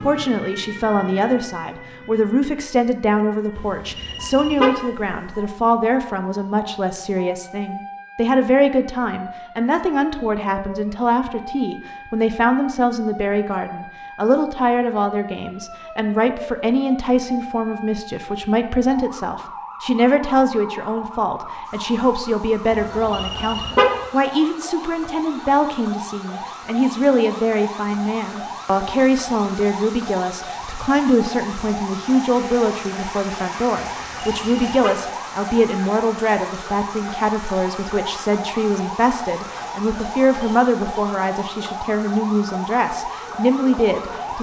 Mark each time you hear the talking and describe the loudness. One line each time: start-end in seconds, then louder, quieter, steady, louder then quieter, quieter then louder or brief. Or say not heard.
0.0-44.3 steady.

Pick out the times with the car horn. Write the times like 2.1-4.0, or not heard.
3.5-4.8, 22.7-24.0, 34.0-35.0.